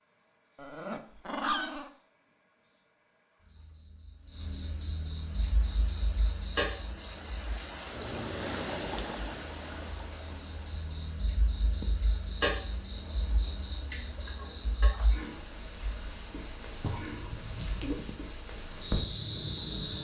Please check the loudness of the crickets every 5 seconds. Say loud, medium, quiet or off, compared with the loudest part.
quiet, medium, medium, loud.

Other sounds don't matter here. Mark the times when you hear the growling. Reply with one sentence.
The growling can be heard from 0.6 to 1.9 s, from 7.9 to 9.0 s and from 16.8 to 18.1 s.